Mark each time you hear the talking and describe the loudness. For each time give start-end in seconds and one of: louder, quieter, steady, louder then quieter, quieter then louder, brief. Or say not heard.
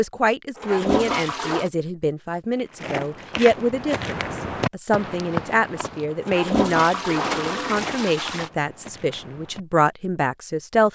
0.0-10.8 steady.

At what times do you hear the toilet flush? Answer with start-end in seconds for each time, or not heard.
0.6-1.7, 6.2-8.5.